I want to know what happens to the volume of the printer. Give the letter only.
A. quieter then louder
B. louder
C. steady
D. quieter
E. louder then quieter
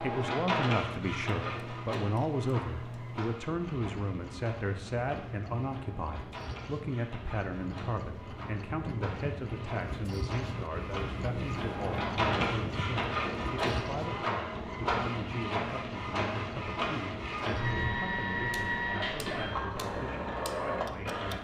A.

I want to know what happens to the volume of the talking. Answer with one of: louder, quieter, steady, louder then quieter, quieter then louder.
quieter.